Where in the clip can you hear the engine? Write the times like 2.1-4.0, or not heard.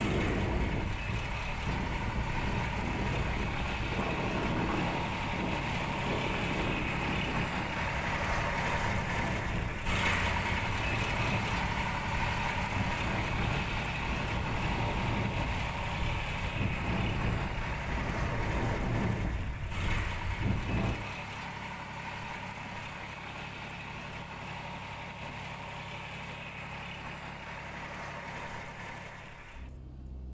0.0-30.2.